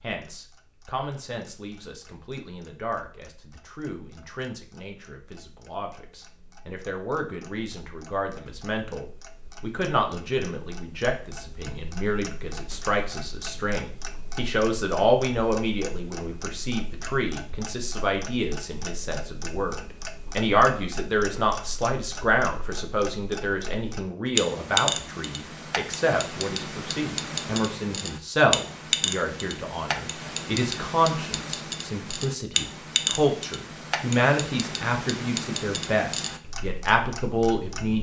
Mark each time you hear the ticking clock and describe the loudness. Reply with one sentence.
The ticking clock can be heard from 0.2 to 37.9 s, getting louder.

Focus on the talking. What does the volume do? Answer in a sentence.
The loudness of the talking goes up.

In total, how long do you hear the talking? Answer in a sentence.
The talking can be heard for 38 seconds in total.